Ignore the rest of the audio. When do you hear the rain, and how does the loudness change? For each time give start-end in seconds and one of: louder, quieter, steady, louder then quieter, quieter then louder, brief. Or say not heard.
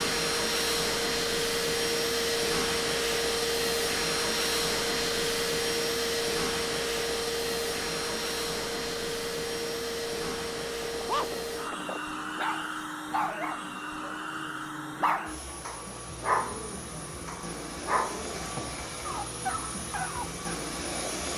not heard.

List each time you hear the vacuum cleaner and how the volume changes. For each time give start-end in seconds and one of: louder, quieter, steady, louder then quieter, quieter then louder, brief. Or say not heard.
0.0-21.3 quieter.